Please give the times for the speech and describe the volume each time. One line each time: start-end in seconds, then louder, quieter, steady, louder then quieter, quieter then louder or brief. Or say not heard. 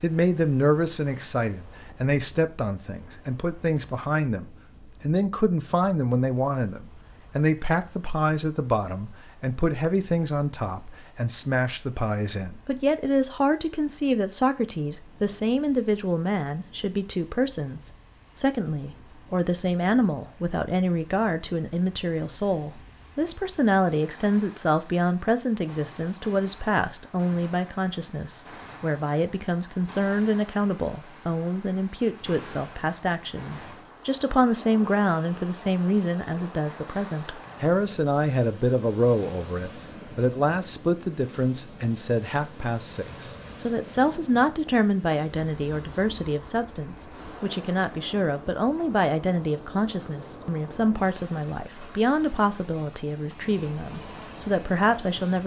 0.0-55.4 steady.